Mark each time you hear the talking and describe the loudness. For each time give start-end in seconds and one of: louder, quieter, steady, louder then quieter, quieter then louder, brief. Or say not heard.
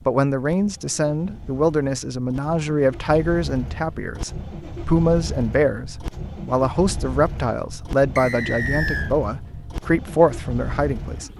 0.1-11.3 steady.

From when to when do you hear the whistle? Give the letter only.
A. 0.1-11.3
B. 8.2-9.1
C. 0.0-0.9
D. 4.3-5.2
B.